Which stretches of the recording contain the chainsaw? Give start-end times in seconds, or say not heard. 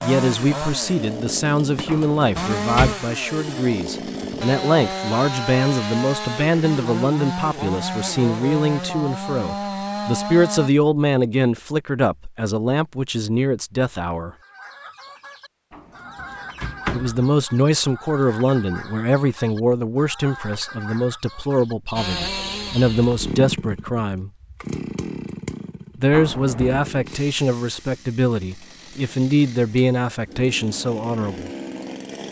0.0-10.7, 21.9-32.2.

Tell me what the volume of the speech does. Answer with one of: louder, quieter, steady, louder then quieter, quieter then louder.
steady.